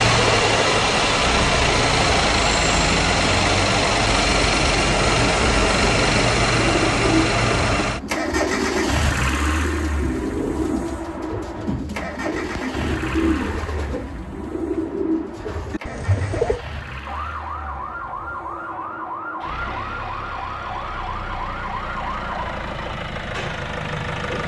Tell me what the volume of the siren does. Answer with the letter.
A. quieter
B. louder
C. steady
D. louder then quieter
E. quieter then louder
C.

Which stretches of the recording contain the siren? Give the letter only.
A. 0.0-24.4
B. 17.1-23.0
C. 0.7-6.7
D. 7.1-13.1
B.